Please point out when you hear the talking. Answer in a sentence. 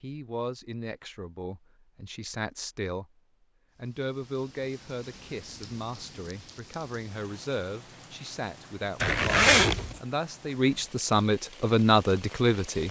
You can hear the talking from 0.0 to 3.0 s and from 3.8 to 12.8 s.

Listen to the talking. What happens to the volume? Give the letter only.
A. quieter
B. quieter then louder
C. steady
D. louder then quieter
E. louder
E.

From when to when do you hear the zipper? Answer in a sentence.
The zipper can be heard from 9.0 to 10.0 s.